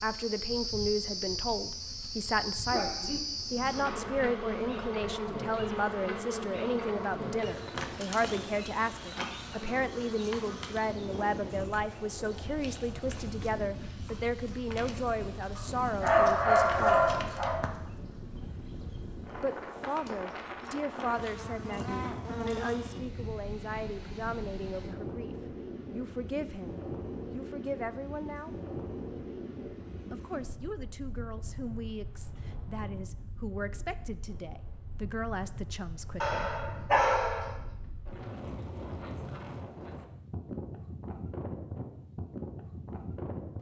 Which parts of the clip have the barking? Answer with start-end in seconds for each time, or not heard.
2.6-4.0, 15.6-17.6, 36.2-37.5.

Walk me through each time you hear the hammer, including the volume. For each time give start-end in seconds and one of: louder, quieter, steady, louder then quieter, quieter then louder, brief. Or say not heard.
not heard.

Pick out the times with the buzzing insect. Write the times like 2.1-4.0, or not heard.
0.0-22.9.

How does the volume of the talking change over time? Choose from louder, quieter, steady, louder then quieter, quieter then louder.
quieter.